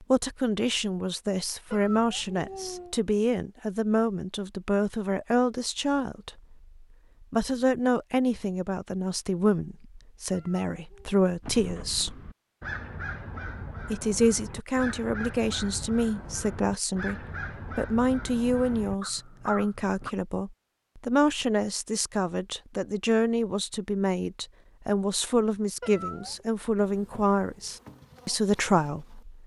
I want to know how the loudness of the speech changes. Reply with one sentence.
The loudness of the speech stays about the same.